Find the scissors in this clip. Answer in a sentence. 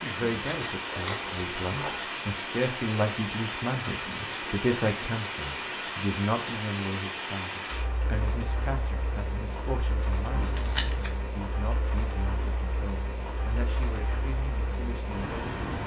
The scissors can be heard from 0.4 to 2.0 s and from 10.3 to 11.1 s.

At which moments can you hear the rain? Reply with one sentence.
The rain can be heard from 0.0 to 15.8 s.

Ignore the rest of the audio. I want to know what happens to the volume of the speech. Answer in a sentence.
The volume of the speech goes down.